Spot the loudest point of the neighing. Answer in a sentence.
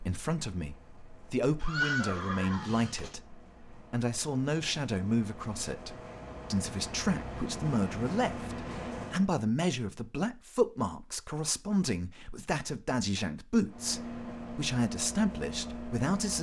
The loudest moment of the neighing is at 2 seconds.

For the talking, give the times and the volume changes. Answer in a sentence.
You can hear the talking from 0.0 to 16.3 s, at a steady volume.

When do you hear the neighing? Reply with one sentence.
You can hear the neighing from 1.6 to 3.1 s.